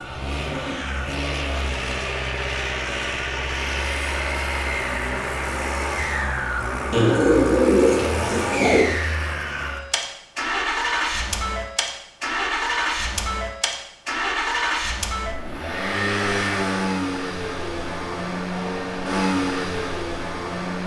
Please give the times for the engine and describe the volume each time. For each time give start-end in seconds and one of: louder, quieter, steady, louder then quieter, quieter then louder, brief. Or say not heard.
0.0-20.8 steady.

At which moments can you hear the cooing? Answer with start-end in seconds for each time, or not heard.
6.9-8.8.